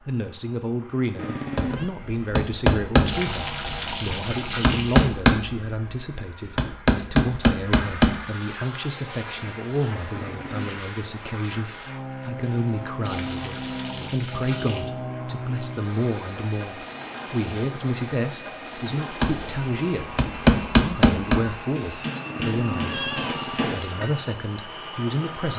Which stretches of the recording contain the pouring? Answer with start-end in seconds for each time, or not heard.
3.0-5.1, 13.1-14.8, 23.1-24.0.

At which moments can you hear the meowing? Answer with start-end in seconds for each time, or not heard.
1.1-1.9, 10.1-10.8, 22.2-23.6.